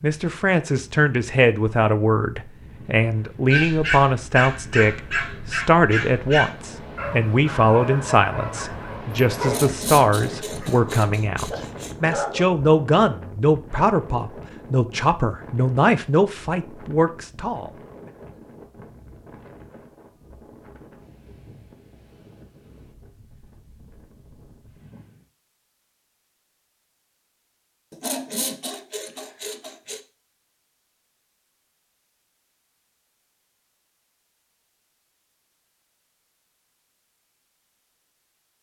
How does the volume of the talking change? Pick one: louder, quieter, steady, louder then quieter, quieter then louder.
steady.